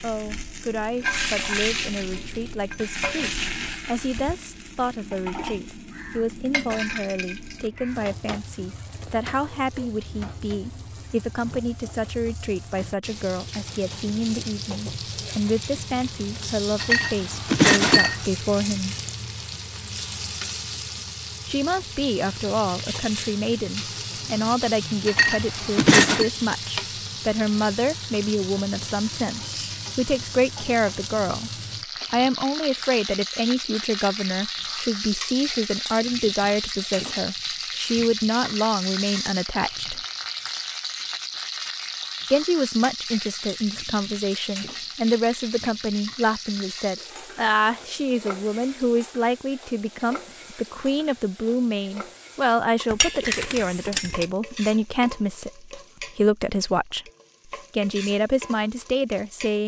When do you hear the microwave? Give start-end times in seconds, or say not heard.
not heard.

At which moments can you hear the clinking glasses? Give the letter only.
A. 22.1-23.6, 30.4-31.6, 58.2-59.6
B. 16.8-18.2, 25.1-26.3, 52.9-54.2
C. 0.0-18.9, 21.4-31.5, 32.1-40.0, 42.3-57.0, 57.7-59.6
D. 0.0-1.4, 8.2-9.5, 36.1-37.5
B.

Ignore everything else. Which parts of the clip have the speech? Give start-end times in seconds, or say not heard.
0.0-18.9, 21.4-31.5, 32.1-40.0, 42.3-57.0, 57.7-59.6.